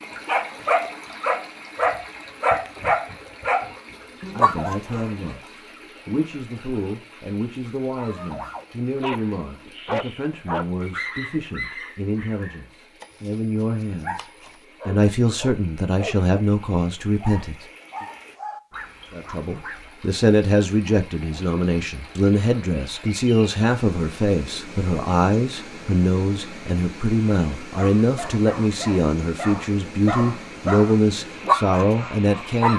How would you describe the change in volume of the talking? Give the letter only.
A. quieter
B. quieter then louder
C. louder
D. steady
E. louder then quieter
C.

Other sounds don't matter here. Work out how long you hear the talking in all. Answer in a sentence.
The talking can be heard for 27 seconds in total.